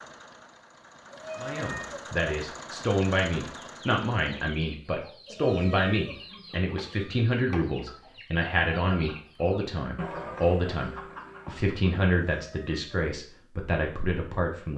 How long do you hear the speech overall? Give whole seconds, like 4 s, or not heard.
13 s.